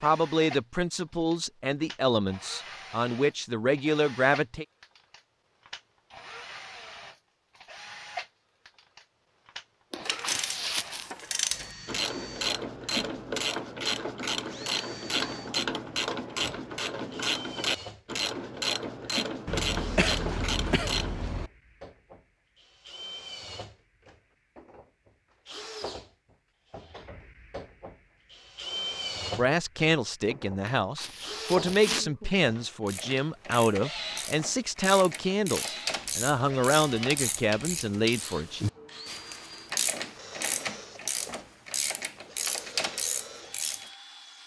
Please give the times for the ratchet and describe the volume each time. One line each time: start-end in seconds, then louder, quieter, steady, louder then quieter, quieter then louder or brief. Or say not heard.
10.1-21.1 steady
32.9-44.0 louder.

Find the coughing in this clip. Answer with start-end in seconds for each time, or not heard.
9.9-11.1, 19.4-21.5, 30.6-32.4.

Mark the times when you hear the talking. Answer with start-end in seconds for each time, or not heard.
0.0-4.7, 29.3-38.6.